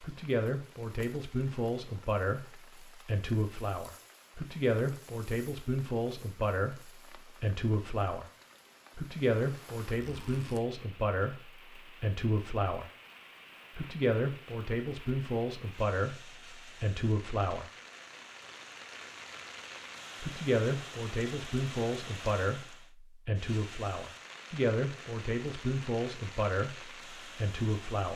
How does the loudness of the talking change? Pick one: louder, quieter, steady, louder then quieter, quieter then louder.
steady.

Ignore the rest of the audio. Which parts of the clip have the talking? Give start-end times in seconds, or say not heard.
0.0-8.2, 8.9-12.9, 13.8-17.6, 20.2-28.1.